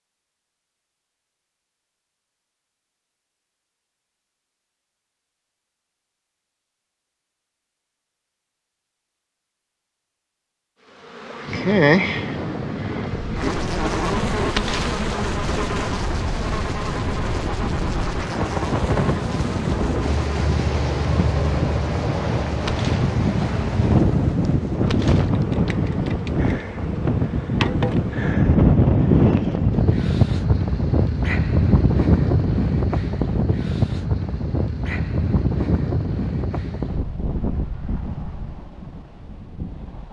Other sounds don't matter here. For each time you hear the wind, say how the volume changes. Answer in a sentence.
You can hear the wind from 11.4 to 40.0 s, getting louder then quieter.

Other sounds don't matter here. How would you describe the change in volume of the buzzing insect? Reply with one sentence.
The volume of the buzzing insect goes down.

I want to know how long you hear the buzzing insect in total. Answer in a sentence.
The buzzing insect can be heard for 17 seconds in total.